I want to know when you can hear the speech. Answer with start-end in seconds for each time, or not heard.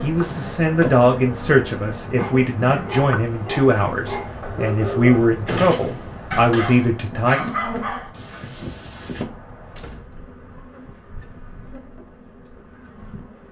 0.0-7.4.